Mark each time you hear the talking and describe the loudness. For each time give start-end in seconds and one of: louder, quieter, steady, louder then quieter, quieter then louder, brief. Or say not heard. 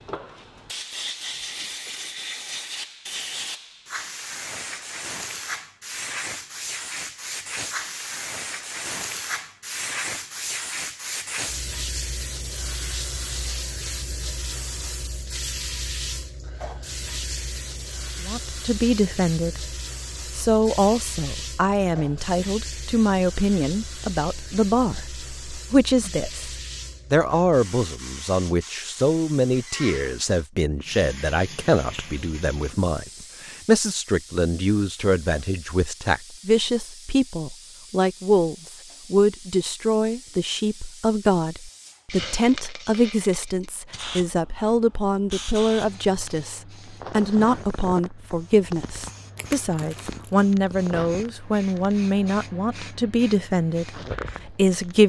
18.2-19.6 brief
20.3-55.0 steady.